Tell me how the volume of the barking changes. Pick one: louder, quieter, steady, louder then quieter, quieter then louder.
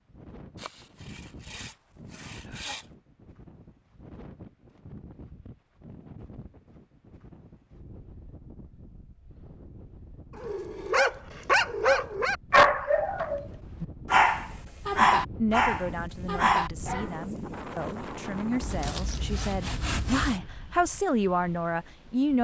steady.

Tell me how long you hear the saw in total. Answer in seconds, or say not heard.
4 s.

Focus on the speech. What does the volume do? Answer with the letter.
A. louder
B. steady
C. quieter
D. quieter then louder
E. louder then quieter
A.